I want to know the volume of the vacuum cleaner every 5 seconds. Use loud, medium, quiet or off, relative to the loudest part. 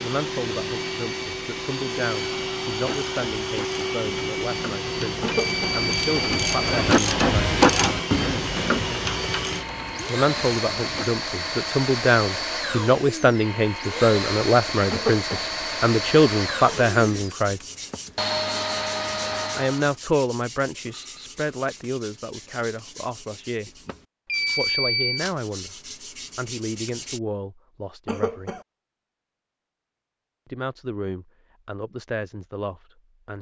loud, loud, loud, loud, off, off, off.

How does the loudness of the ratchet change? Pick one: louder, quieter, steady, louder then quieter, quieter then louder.
louder then quieter.